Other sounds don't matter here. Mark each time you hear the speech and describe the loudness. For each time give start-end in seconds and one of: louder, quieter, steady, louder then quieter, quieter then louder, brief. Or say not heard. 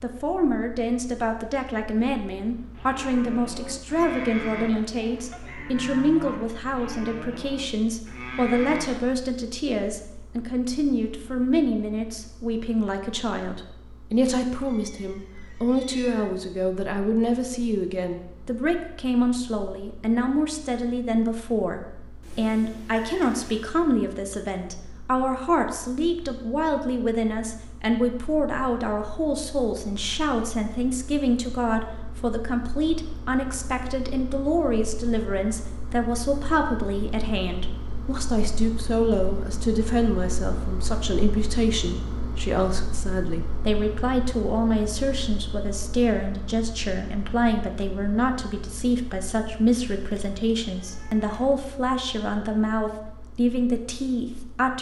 0.0-54.7 steady.